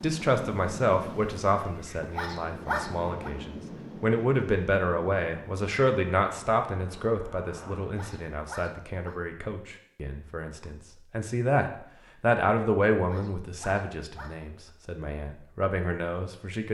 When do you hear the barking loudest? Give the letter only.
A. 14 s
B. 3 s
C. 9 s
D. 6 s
B.